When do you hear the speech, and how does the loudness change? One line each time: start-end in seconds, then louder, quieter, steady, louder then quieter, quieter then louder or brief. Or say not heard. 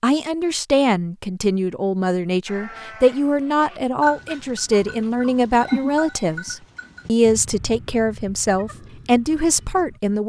0.0-10.2 steady.